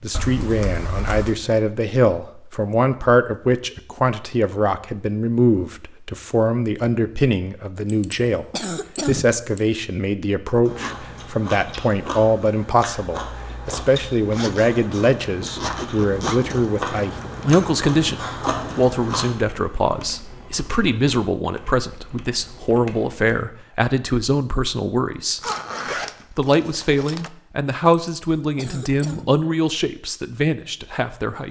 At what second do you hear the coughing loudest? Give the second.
9 s.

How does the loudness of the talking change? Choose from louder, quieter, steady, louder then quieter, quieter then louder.
steady.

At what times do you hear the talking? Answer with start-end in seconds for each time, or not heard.
0.0-8.4, 9.1-25.4, 26.3-31.4.